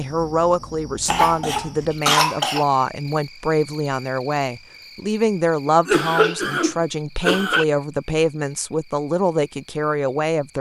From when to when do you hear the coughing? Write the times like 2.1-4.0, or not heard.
1.1-2.6, 5.7-7.7.